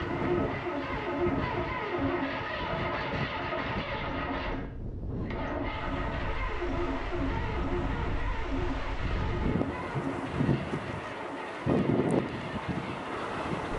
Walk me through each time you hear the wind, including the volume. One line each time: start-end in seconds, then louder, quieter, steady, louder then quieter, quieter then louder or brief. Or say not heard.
0.0-13.7 louder.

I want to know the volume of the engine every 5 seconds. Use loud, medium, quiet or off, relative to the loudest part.
loud, loud, medium.